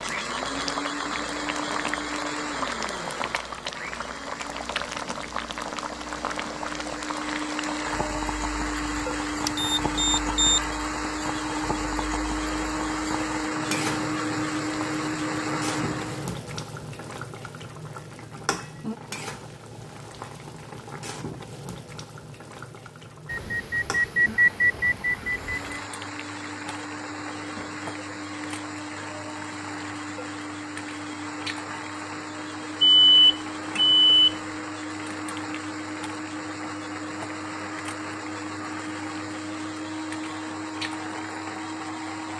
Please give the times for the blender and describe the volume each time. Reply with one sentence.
You can hear the blender from 0.0 to 16.4 s, getting quieter then louder; and from 25.2 to 42.3 s, at a steady volume.